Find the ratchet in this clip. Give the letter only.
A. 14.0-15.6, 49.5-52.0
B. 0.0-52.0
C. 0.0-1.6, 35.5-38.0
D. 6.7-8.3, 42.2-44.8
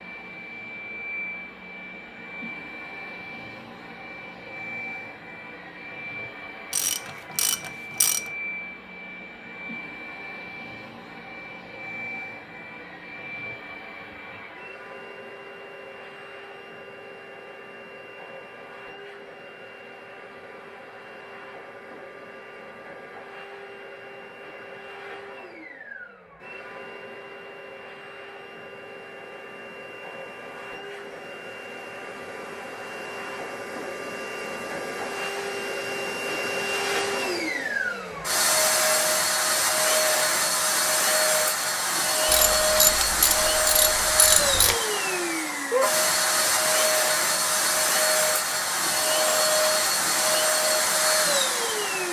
D.